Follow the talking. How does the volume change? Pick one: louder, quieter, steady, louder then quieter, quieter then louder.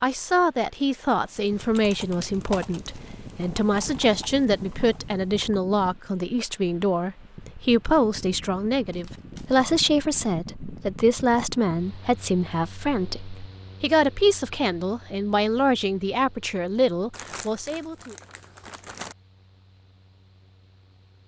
steady.